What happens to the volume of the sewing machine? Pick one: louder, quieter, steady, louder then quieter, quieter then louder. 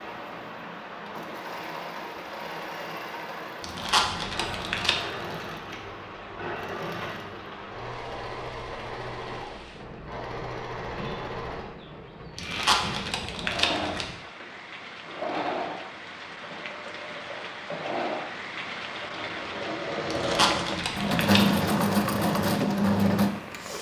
louder.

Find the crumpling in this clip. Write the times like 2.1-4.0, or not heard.
3.6-5.0, 12.3-14.2, 20.1-21.8.